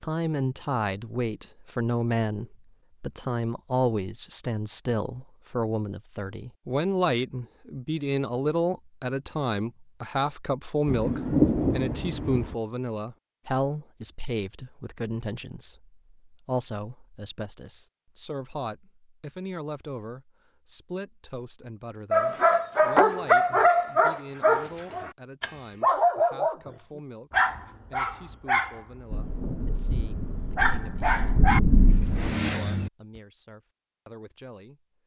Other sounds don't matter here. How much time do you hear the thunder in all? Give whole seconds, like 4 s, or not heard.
5 s.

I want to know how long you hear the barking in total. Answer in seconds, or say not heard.
11 s.